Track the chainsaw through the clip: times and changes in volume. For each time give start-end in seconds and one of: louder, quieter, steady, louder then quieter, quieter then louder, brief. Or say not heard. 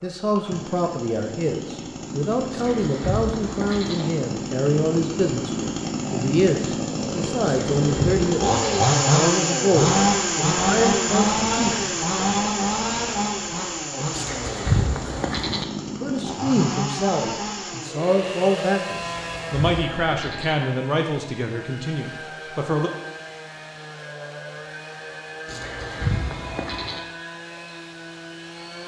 0.0-28.8 louder then quieter.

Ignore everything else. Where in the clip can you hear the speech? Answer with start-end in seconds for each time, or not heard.
0.0-11.9, 16.0-22.9.